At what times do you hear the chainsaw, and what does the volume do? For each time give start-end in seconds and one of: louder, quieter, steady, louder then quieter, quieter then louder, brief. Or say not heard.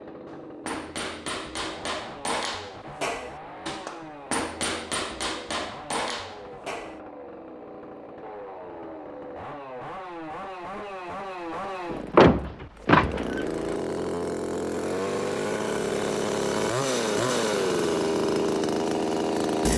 0.0-19.7 louder.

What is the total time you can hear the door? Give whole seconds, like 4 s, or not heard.
2 s.